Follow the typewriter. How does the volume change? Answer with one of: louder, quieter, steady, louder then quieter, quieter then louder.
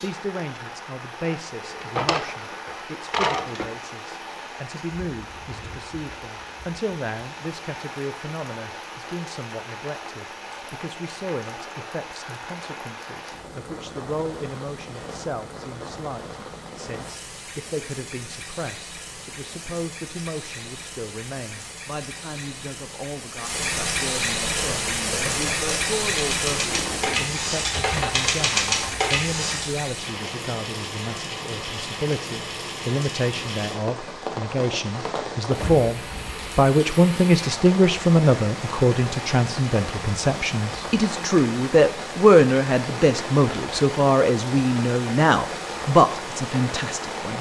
louder.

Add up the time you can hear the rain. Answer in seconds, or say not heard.
47 s.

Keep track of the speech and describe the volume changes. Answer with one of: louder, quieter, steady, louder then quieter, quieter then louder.
louder.